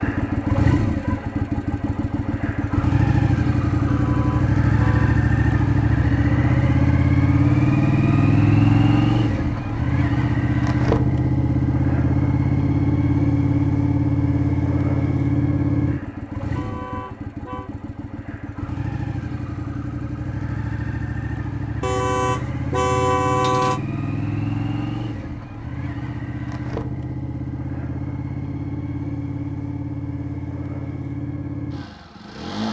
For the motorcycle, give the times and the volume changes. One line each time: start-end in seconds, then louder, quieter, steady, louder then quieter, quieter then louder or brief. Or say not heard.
0.0-32.6 quieter.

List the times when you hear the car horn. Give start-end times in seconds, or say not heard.
3.9-5.2, 16.6-17.7, 21.8-23.8.